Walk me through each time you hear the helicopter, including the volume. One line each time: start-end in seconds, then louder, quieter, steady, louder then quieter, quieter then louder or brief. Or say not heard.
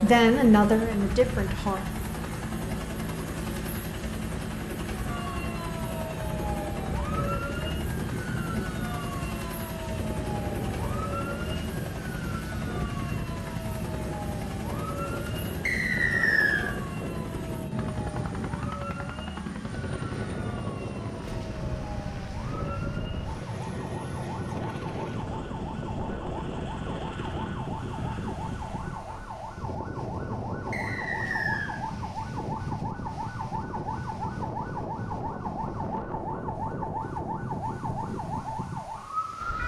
0.0-28.9 quieter.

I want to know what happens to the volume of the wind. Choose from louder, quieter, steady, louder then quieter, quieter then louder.
steady.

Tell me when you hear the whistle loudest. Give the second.
16 s.